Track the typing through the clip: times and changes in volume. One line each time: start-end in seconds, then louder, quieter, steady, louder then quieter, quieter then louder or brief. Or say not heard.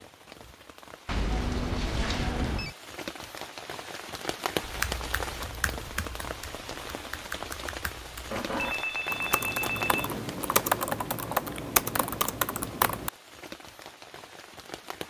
4.6-13.1 louder.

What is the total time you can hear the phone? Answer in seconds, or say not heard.
3 s.